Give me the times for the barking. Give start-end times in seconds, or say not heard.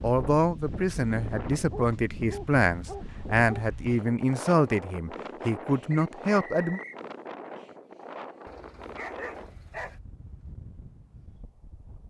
1.7-3.6, 8.4-10.0.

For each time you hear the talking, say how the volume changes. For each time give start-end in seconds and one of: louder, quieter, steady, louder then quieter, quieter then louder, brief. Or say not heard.
0.0-6.8 steady.